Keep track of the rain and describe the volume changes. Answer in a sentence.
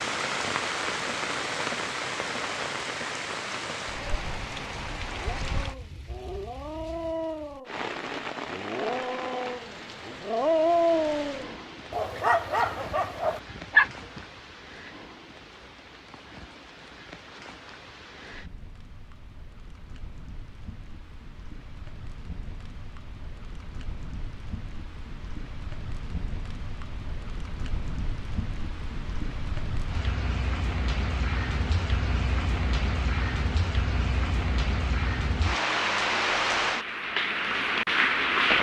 The volume of the rain goes down, then up.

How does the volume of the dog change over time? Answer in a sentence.
The loudness of the dog goes up.